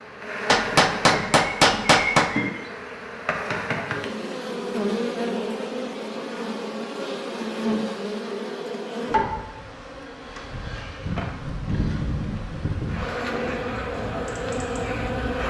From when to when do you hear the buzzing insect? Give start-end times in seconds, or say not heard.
0.0-15.4.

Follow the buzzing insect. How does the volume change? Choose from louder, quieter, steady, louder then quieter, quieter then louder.
steady.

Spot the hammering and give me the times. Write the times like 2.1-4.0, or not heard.
0.5-2.3.